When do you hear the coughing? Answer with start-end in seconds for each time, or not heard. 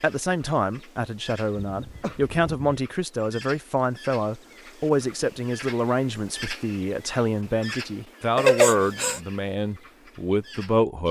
1.6-2.7, 8.3-9.2.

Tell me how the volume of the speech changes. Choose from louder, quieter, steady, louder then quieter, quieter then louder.
steady.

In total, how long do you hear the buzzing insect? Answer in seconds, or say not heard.
not heard.